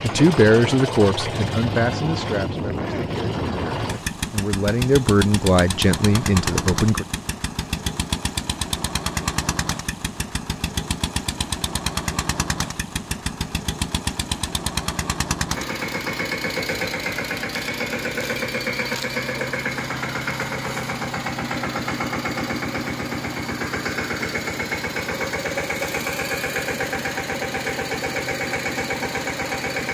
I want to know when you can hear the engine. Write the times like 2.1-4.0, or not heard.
0.0-29.8.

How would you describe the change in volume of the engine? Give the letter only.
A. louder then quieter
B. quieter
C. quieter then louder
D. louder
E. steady
E.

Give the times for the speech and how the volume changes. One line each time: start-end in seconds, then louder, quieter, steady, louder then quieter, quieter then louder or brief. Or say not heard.
0.0-7.0 quieter then louder.